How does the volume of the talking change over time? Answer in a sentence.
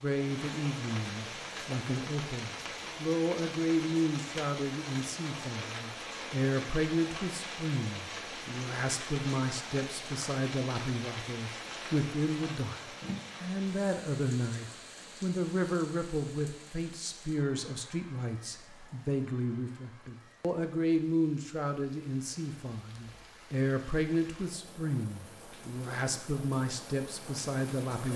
The volume of the talking stays about the same.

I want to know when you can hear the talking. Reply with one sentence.
The talking can be heard from 0.0 to 12.8 s and from 13.4 to 28.1 s.